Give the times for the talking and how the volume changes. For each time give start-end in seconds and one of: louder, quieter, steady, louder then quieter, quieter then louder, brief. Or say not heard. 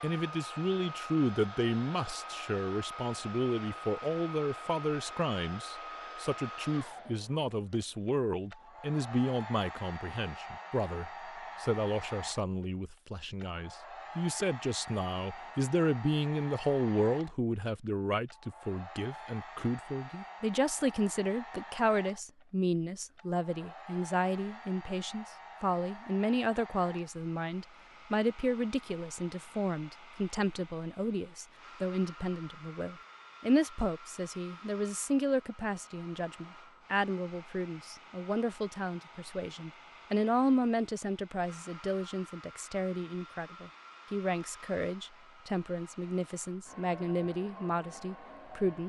0.0-48.8 steady.